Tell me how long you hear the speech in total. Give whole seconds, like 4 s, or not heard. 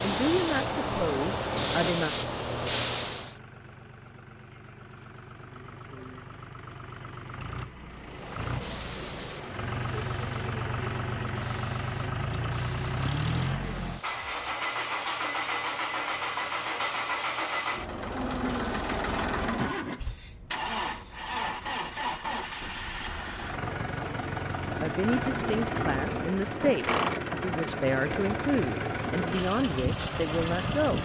8 s.